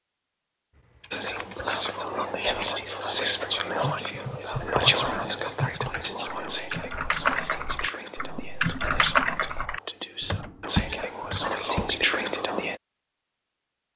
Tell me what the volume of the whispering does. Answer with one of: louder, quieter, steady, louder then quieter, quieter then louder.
quieter then louder.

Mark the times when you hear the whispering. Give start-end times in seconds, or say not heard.
1.1-12.8.